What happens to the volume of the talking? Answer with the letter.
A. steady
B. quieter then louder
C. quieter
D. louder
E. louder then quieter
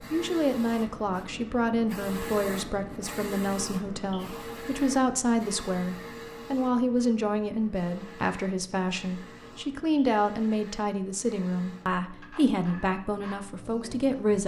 A.